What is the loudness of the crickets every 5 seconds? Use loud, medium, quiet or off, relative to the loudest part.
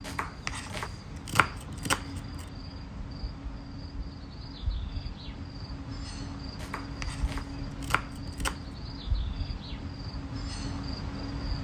medium, loud, loud.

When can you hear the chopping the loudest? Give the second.
2 s.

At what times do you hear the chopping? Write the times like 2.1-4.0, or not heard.
0.0-2.5, 6.5-8.6.